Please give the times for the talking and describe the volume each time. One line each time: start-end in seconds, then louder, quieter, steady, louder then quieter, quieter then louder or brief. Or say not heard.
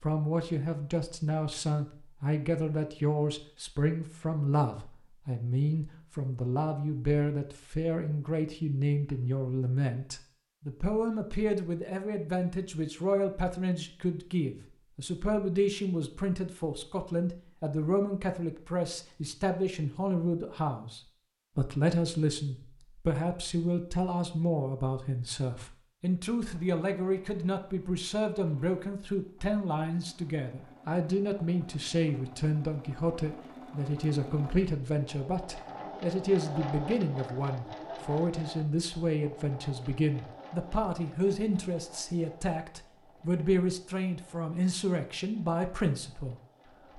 0.0-46.4 steady.